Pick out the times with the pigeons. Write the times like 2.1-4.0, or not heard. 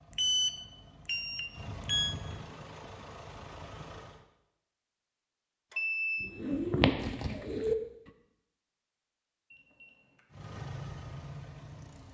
6.2-7.8.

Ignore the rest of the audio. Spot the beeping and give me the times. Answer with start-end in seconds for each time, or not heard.
0.1-2.1, 5.7-6.3, 9.5-10.2.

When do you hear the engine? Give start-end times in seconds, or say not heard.
0.0-4.2, 10.3-12.0.